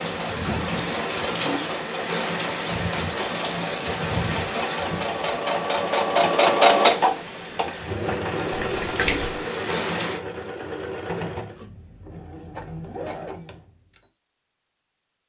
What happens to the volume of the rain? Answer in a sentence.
The loudness of the rain goes down, then up.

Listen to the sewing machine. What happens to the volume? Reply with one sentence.
The volume of the sewing machine goes up, then down.